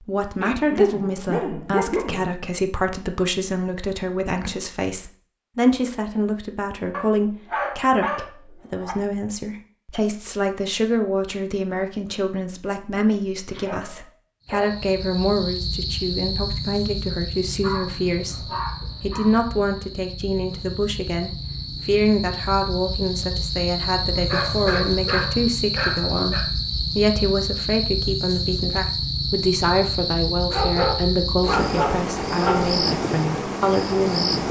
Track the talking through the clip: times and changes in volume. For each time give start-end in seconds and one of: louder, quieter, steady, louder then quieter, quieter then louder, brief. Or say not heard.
0.0-34.4 steady.